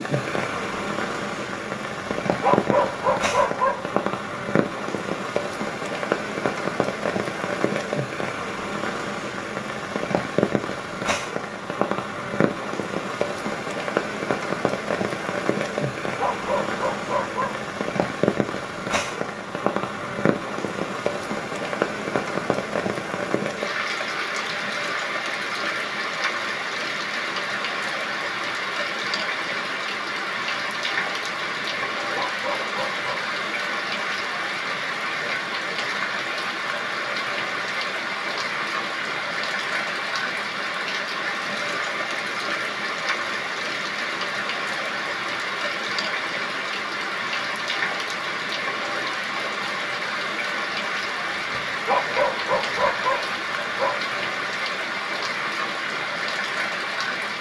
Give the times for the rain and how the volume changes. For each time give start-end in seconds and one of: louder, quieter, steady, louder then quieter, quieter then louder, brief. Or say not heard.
0.0-57.3 steady.